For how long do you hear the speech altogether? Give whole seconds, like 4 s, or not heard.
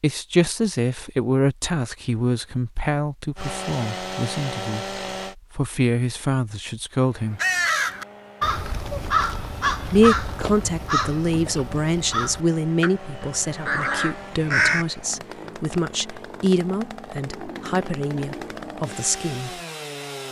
17 s.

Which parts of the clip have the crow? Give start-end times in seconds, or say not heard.
7.3-14.8.